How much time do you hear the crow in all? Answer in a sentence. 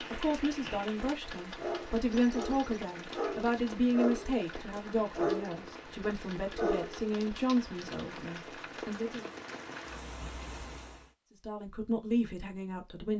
The crow can't be heard in this clip.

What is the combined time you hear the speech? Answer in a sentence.
You can hear the speech for 11 seconds altogether.